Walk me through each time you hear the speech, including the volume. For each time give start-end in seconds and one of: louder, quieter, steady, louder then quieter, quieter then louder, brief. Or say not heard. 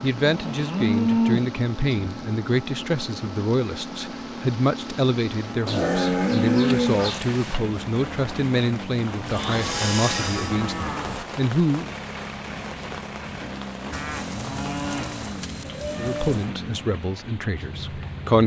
0.0-11.9 steady
15.9-18.4 brief.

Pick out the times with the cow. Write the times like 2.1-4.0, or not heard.
0.2-1.6, 5.7-7.6, 9.2-11.2, 13.9-16.5.